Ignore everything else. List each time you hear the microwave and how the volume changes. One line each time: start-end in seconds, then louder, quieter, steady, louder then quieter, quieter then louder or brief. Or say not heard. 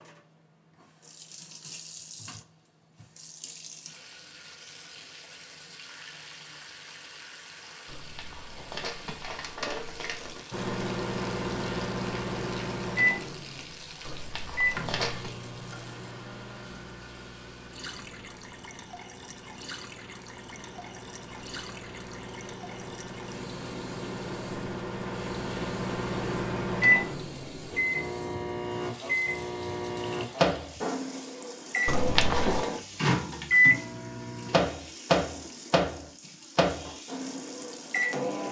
10.5-38.4 quieter then louder.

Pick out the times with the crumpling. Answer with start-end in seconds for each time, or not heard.
7.8-10.5, 14.1-15.3, 31.9-32.6.